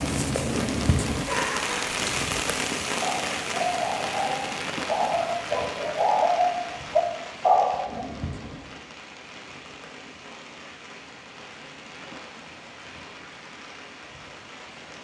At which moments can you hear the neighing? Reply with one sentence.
You can't hear the neighing here.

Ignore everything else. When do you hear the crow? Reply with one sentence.
The crow can't be heard in this clip.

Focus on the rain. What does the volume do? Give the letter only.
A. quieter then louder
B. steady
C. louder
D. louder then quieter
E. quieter
E.